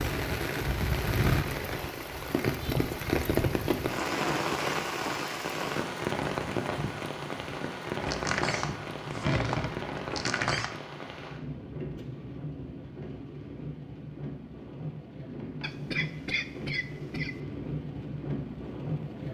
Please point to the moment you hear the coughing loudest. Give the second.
16 s.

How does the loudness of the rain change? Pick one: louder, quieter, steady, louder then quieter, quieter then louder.
quieter.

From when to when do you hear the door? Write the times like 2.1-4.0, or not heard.
8.0-10.7.